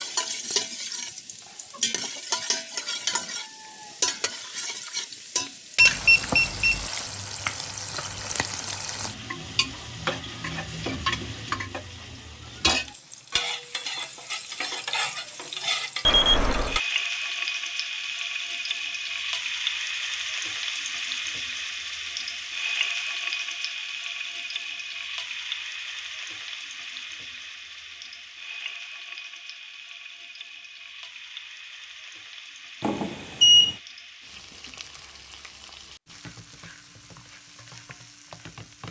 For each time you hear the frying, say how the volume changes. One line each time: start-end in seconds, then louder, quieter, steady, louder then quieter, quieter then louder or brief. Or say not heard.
0.0-38.8 quieter.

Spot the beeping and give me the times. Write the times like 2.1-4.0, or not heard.
5.8-6.8, 16.1-16.8, 32.8-33.8.